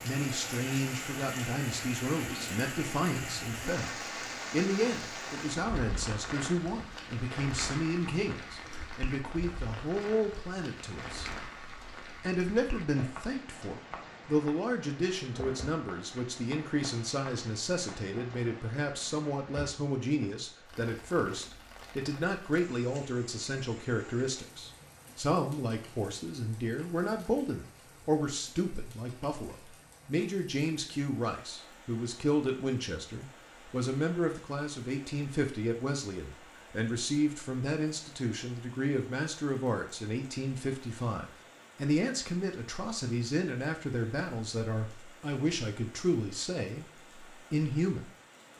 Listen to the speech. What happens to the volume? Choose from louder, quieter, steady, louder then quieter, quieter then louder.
steady.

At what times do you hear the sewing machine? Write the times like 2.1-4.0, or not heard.
not heard.